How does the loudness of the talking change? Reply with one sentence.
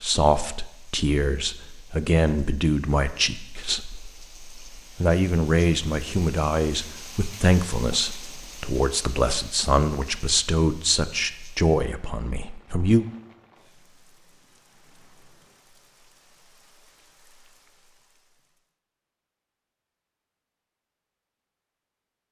The volume of the talking stays about the same.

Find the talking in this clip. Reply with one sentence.
You can hear the talking from 0.0 to 13.1 s.